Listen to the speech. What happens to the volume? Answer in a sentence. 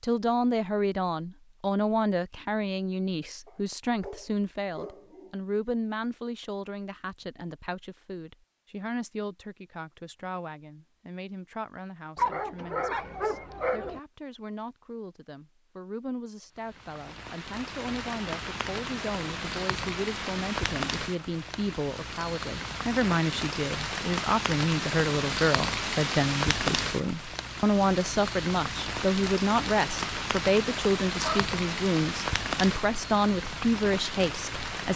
The volume of the speech goes down, then up.